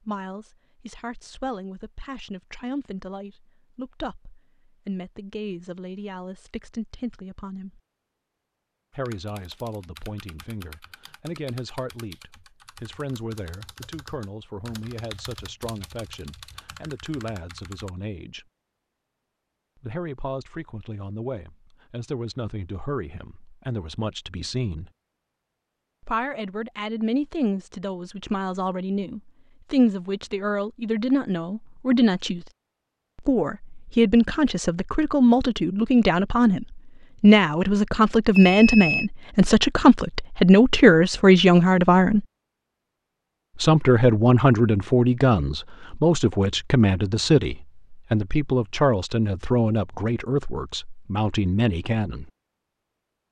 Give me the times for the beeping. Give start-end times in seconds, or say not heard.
38.3-39.1.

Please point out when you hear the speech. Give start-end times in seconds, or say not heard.
0.0-7.8, 8.9-18.4, 19.8-24.9, 26.0-32.5, 33.1-42.2, 43.5-52.3.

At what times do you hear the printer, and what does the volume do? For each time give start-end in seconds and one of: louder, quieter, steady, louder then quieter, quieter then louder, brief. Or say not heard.
not heard.